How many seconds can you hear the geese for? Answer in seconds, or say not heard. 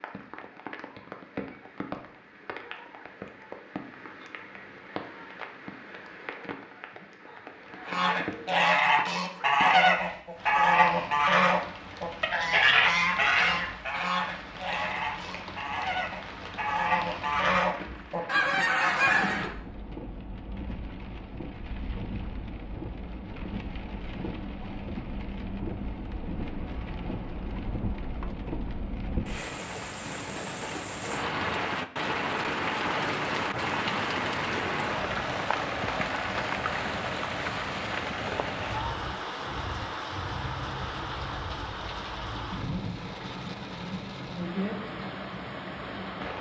12 s.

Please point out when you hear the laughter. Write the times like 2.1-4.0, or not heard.
not heard.